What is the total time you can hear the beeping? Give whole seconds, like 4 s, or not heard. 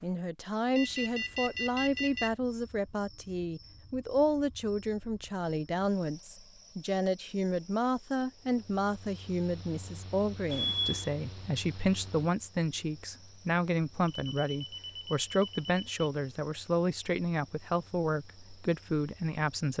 4 s.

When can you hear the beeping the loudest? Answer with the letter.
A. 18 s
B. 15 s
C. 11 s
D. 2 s
C.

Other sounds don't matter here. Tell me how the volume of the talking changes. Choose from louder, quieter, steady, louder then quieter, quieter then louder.
steady.